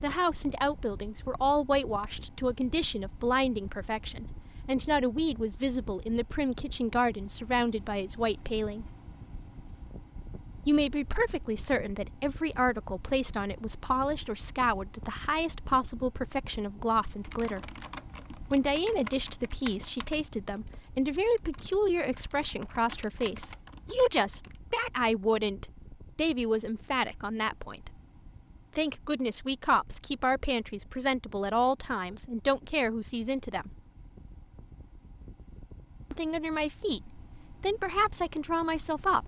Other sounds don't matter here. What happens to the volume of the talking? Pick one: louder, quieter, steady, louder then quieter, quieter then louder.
steady.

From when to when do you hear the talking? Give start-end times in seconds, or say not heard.
0.0-8.9, 10.7-17.8, 18.4-27.9, 28.8-33.7, 36.1-39.2.